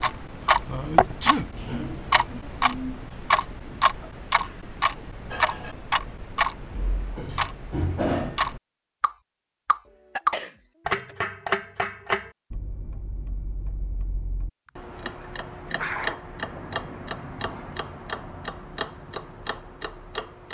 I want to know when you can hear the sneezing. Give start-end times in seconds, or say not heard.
0.5-1.5, 9.8-11.2, 14.7-16.2.